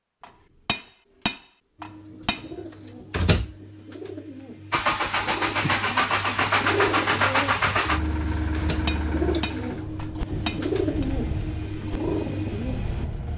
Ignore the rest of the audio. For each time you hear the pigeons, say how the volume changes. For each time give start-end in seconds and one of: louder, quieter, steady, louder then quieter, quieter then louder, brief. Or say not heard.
1.8-13.1 louder.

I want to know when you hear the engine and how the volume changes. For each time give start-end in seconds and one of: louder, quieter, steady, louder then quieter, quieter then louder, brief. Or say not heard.
4.7-13.3 quieter.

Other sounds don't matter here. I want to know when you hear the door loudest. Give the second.
3 s.